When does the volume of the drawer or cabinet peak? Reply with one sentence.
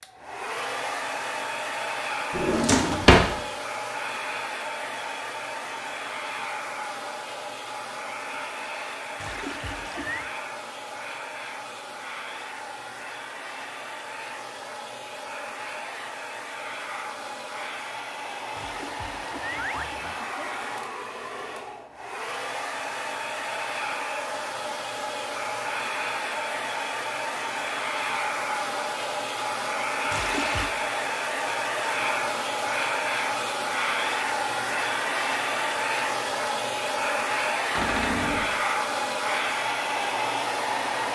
The volume of the drawer or cabinet peaks at 3 seconds.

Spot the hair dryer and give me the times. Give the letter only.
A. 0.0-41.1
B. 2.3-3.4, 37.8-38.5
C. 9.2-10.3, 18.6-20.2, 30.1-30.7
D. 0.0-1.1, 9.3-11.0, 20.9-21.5
A.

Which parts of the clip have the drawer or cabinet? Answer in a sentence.
The drawer or cabinet can be heard from 2.3 to 3.4 s and from 37.8 to 38.5 s.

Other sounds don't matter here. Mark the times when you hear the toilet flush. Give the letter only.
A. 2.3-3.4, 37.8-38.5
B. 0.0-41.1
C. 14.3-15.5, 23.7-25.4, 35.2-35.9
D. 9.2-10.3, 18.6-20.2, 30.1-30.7
D.